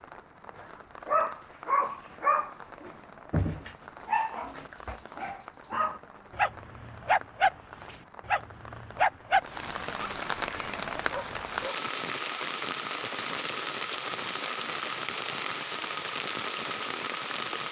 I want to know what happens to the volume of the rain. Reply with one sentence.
The volume of the rain goes up.